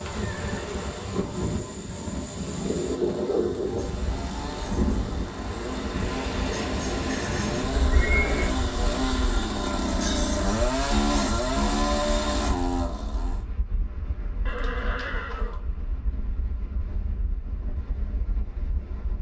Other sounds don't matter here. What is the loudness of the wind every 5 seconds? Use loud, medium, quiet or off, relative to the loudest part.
loud, loud, quiet, quiet.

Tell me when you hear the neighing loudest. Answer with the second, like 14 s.
8 s.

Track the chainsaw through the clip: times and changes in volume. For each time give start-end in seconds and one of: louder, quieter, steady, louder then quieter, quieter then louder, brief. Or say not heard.
0.0-13.4 louder.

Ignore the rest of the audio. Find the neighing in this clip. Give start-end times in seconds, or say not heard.
0.0-0.8, 7.3-8.6, 14.4-15.6.